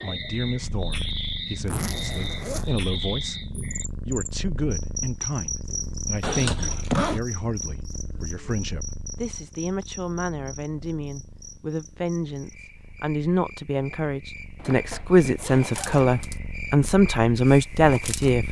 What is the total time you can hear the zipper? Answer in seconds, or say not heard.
4 s.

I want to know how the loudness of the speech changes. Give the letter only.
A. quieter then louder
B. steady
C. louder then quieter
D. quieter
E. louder
E.